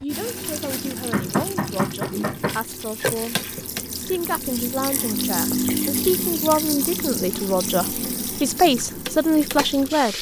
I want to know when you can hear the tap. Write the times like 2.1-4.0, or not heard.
0.0-10.1.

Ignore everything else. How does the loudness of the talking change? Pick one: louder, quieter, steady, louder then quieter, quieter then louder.
louder.